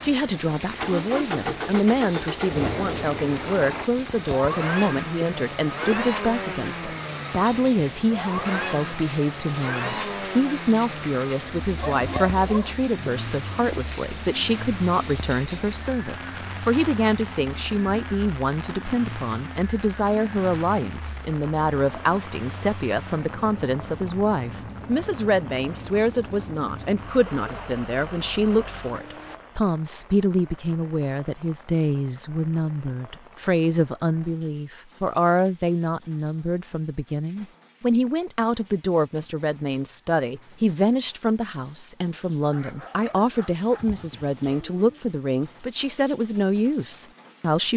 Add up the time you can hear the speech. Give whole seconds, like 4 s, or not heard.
48 s.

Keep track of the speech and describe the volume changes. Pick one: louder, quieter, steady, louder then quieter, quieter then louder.
steady.